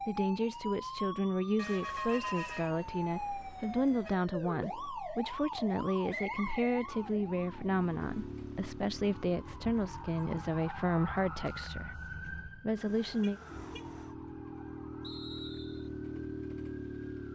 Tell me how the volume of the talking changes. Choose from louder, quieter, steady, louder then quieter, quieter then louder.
steady.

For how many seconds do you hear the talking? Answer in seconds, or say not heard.
13 s.